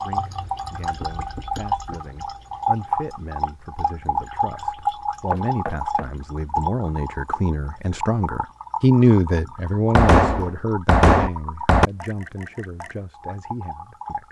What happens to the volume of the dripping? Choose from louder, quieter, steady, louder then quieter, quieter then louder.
quieter.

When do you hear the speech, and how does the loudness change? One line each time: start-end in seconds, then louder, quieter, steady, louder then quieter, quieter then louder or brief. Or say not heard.
0.0-14.2 louder then quieter.